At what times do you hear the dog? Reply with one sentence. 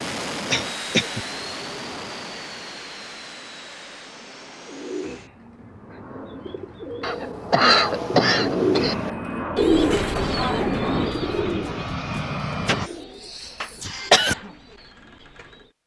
The dog can't be heard in this clip.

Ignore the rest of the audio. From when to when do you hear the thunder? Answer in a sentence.
The thunder can be heard from 7.8 to 9.2 s.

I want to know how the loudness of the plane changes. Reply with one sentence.
The loudness of the plane goes down, then up.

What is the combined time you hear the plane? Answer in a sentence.
You can hear the plane for 13 seconds altogether.